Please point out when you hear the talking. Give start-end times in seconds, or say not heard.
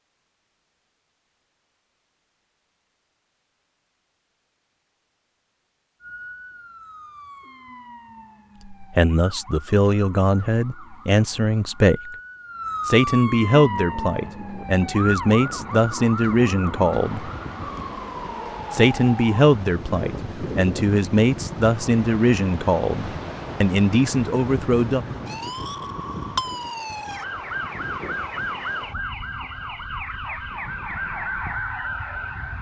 8.7-12.1, 12.8-17.3, 18.7-25.0.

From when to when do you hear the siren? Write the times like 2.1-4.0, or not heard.
6.0-32.5.